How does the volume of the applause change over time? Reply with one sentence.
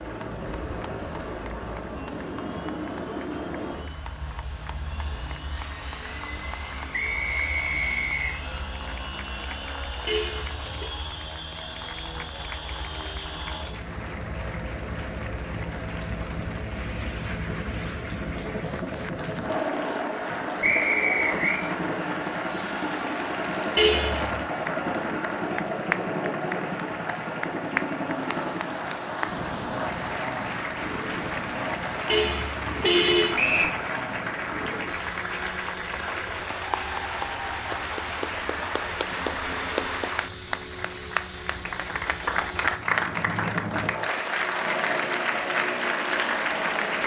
The volume of the applause goes up.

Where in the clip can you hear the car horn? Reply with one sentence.
The car horn can be heard from 10.1 to 10.8 s, from 23.8 to 24.4 s and from 32.0 to 33.4 s.